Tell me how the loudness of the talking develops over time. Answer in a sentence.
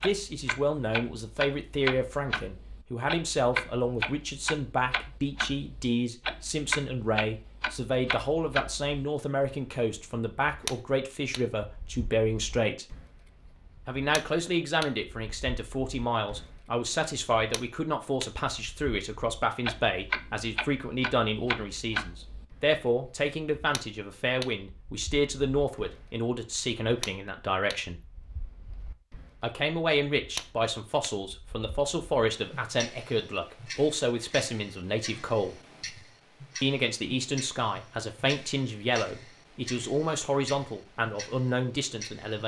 The volume of the talking stays about the same.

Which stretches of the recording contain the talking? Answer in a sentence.
The talking can be heard from 0.0 to 12.8 s, from 13.8 to 28.0 s, from 29.4 to 35.5 s and from 36.6 to 42.4 s.